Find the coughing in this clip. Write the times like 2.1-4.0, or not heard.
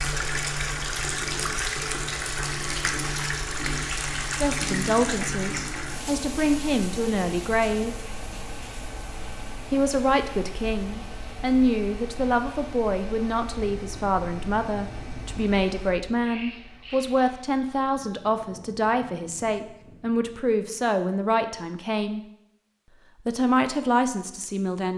not heard.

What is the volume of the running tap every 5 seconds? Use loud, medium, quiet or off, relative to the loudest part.
loud, medium, quiet, quiet, off.